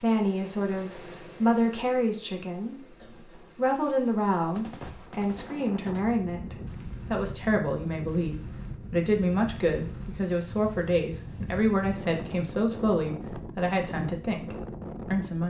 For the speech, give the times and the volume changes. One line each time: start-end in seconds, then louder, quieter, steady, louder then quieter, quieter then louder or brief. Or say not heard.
0.0-15.4 steady.